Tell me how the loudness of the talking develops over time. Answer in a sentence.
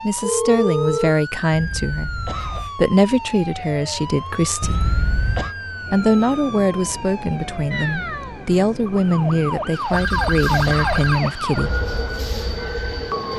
The volume of the talking stays about the same.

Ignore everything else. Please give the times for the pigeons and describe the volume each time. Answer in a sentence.
The pigeons can't be heard in this clip.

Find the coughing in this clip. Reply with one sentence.
You can hear the coughing from 1.5 to 2.8 s, from 4.6 to 5.5 s and from 9.9 to 11.1 s.